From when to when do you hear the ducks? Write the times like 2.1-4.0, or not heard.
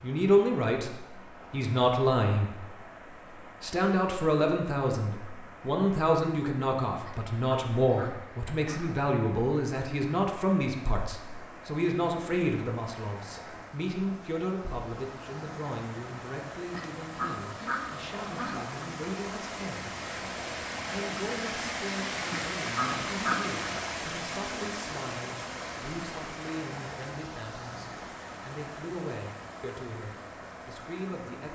7.0-8.9, 16.7-18.6, 22.3-23.9.